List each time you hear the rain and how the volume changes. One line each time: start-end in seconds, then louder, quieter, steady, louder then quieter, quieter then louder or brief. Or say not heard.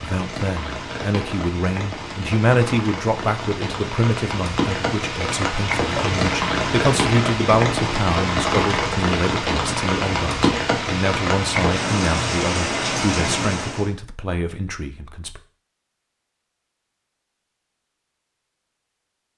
0.0-13.9 louder.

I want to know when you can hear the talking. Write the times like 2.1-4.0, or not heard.
0.0-15.4.